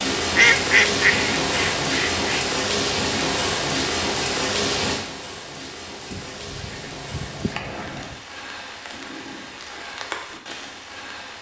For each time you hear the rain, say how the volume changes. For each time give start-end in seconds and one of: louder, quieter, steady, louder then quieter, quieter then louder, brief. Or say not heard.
0.0-11.3 quieter.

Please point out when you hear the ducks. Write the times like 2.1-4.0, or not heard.
0.3-2.5, 6.1-8.2.